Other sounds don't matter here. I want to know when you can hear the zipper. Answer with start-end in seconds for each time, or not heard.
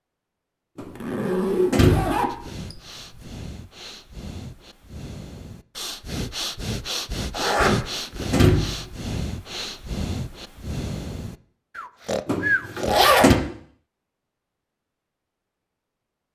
0.8-3.4, 7.3-8.4, 12.8-13.4.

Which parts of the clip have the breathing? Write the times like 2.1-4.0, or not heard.
2.2-12.9.